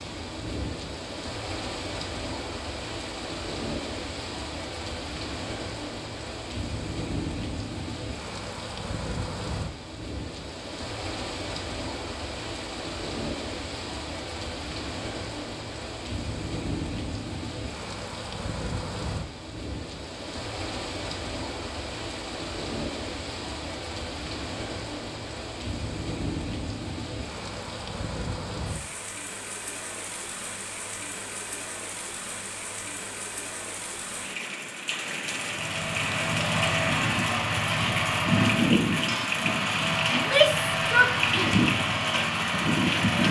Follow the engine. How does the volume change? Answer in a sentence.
The volume of the engine stays about the same.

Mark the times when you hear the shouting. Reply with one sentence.
The shouting can be heard from 40.1 to 41.6 s.